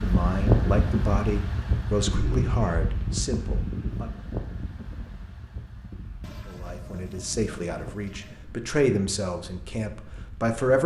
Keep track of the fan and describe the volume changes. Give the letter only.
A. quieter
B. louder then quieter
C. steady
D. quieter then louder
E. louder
A.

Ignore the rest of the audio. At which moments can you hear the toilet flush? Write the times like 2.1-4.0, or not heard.
2.1-2.5, 6.2-8.4.